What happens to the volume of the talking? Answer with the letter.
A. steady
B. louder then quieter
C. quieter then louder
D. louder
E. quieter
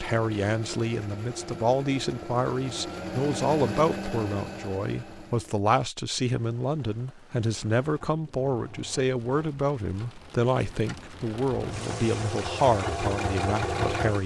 A.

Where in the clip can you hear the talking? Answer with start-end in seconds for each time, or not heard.
0.0-14.2.